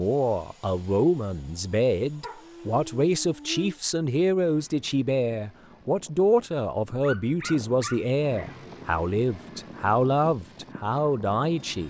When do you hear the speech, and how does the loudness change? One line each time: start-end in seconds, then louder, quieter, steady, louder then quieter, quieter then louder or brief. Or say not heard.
0.0-11.8 steady.